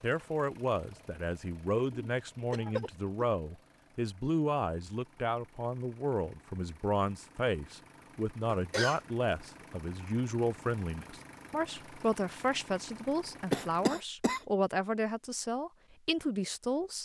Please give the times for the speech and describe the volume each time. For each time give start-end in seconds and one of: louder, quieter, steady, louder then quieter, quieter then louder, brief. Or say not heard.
0.0-17.0 steady.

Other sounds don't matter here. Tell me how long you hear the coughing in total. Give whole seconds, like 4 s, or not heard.
3 s.